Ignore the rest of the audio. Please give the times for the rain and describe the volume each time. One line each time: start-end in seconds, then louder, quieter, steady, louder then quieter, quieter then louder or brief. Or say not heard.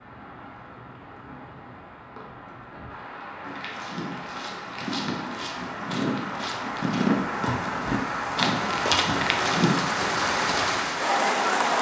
0.0-11.7 louder.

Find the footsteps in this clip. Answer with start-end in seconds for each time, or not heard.
3.5-9.8.